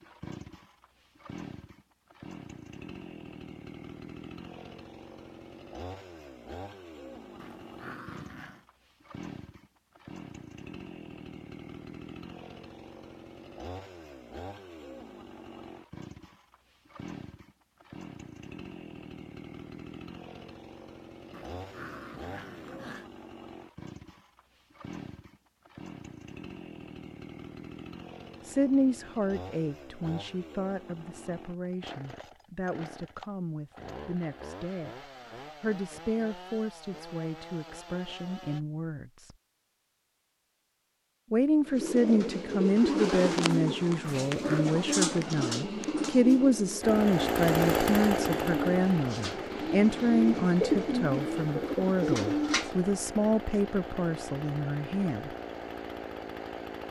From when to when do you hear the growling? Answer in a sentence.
The growling can be heard from 7.3 to 8.7 s, from 21.3 to 23.1 s and from 44.0 to 44.7 s.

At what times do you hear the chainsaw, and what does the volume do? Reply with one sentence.
The chainsaw can be heard from 0.0 to 38.6 s, at a steady volume; and from 46.8 to 56.8 s, getting quieter.